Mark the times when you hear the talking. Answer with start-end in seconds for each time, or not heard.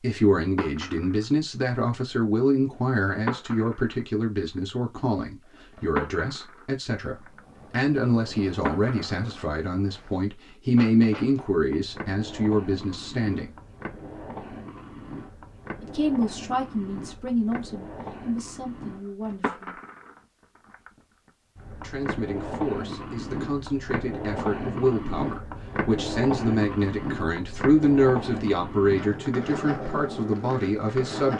0.0-13.5, 15.8-19.8, 21.8-31.3.